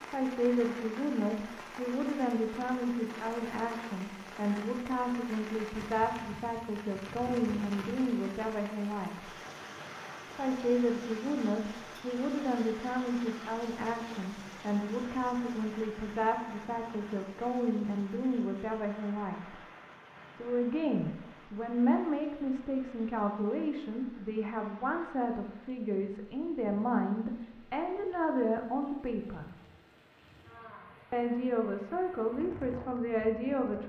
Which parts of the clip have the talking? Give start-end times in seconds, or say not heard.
0.0-9.3, 10.2-19.6, 20.4-29.6, 31.1-33.8.